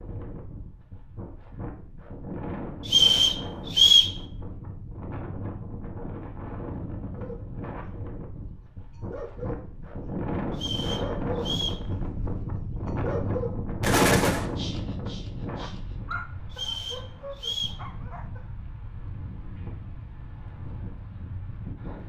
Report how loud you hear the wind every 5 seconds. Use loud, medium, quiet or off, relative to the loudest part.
medium, medium, loud, medium, medium.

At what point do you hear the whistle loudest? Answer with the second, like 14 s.
4 s.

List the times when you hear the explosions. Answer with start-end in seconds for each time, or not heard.
13.8-14.5.